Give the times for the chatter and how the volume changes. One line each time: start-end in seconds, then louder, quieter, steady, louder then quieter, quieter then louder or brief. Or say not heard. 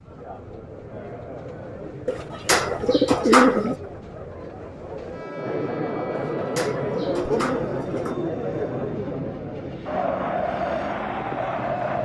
0.0-11.9 louder.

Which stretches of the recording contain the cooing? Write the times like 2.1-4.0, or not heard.
2.0-3.8, 6.2-8.2.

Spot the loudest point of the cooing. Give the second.
3 s.